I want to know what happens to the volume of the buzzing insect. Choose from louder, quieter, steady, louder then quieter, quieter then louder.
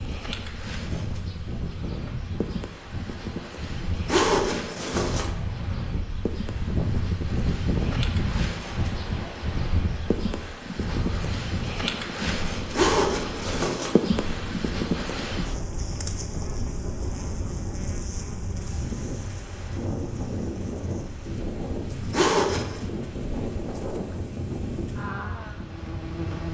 louder then quieter.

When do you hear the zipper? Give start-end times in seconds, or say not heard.
4.0-5.3, 12.7-14.0, 22.1-22.9.